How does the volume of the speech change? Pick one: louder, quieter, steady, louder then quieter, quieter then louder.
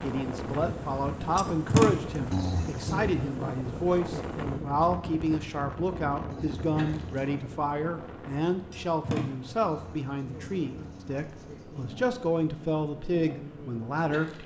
steady.